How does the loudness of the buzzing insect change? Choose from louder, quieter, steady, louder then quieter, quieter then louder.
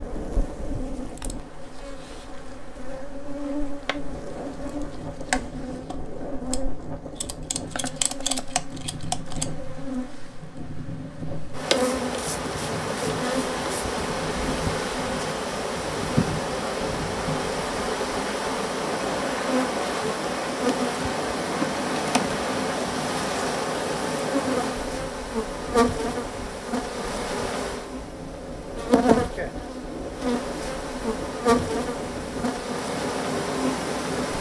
louder.